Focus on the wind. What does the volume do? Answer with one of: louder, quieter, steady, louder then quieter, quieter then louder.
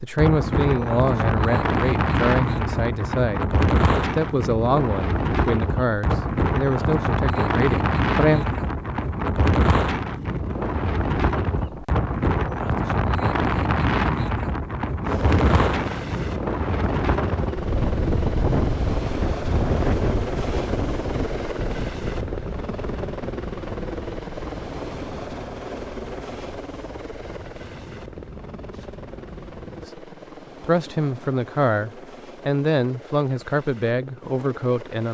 quieter.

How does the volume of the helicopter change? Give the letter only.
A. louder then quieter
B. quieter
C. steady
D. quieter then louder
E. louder
B.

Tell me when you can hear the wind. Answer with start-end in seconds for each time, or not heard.
0.0-29.9.